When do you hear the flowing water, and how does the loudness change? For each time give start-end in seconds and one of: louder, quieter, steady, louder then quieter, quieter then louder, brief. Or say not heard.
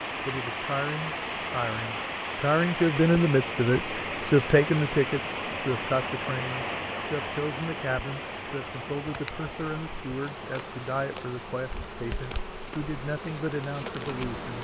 0.0-14.6 quieter.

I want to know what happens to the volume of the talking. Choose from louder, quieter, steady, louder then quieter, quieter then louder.
quieter.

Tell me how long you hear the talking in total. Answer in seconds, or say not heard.
14 s.